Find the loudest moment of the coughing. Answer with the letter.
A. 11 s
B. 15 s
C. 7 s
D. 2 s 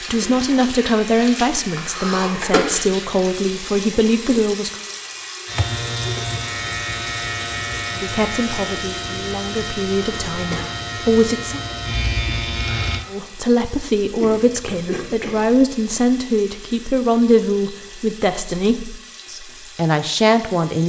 D.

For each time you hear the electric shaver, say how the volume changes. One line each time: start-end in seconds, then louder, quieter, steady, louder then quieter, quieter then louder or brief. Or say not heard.
5.5-13.1 steady.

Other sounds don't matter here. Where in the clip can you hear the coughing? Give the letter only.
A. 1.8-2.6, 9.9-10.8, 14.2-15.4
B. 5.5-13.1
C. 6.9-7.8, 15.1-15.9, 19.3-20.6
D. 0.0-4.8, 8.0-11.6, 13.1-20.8
A.